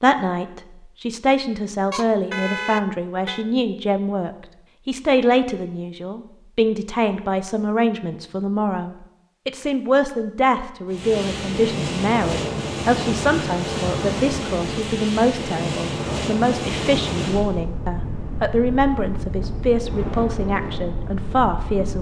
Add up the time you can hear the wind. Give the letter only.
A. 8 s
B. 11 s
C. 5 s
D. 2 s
B.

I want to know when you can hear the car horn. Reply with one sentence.
You can hear the car horn from 1.9 to 3.5 s.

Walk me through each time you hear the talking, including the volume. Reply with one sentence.
You can hear the talking from 0.0 to 21.9 s, at a steady volume.